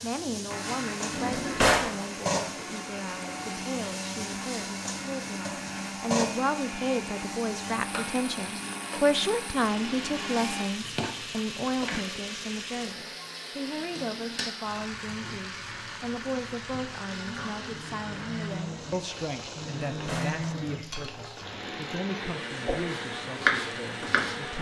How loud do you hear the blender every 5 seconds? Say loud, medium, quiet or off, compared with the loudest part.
loud, loud, medium, medium, loud.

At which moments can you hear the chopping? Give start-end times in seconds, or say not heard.
22.8-24.4.